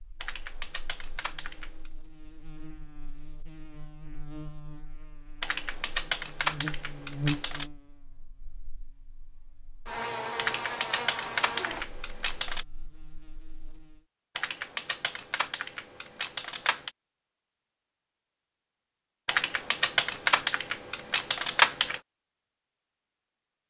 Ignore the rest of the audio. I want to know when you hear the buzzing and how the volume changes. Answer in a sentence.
You can hear the buzzing from 0.0 to 14.0 s, getting louder.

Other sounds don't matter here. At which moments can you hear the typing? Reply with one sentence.
You can hear the typing from 0.2 to 1.9 s, from 5.4 to 7.7 s, from 10.3 to 12.7 s, from 14.3 to 16.9 s and from 19.2 to 22.0 s.